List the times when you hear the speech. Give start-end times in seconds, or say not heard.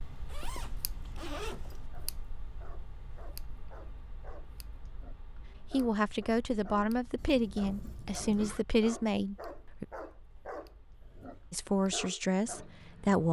5.7-9.8, 11.5-13.2.